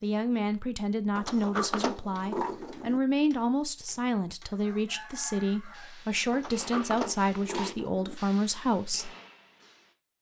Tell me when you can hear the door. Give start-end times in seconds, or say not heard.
1.1-3.0, 6.3-8.2.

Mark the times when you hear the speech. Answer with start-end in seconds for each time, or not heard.
0.0-9.1.